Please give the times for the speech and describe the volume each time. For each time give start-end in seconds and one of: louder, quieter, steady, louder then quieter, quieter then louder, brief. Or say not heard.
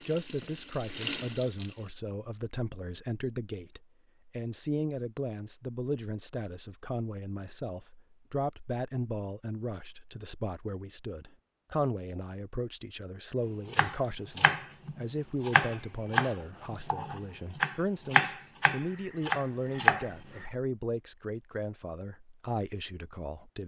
0.1-23.6 steady.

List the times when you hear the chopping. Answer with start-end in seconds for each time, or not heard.
13.7-20.4.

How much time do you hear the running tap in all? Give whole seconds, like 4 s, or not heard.
2 s.